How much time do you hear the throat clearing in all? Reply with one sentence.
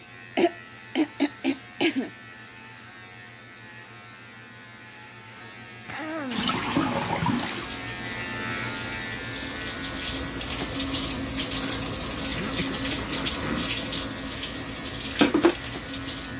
You can hear the throat clearing for 4 seconds altogether.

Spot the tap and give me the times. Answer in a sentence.
You can hear the tap from 6.3 to 16.3 s.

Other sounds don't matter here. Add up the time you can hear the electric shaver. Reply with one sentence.
You can hear the electric shaver for 16 seconds altogether.